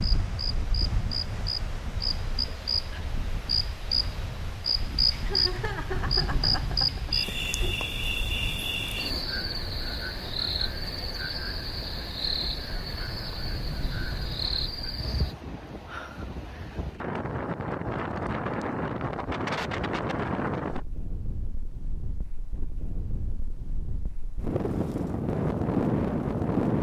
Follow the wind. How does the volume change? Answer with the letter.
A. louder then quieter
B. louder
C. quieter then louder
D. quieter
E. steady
B.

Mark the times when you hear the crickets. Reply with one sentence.
You can hear the crickets from 0.0 to 15.3 s.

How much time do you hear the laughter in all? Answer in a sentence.
You can hear the laughter for 3 seconds altogether.